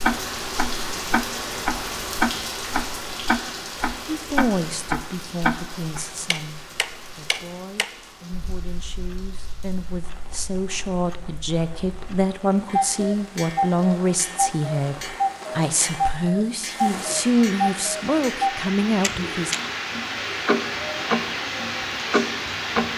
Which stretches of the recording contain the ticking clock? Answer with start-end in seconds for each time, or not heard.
0.0-22.9.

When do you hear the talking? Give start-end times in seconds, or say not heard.
4.0-19.6.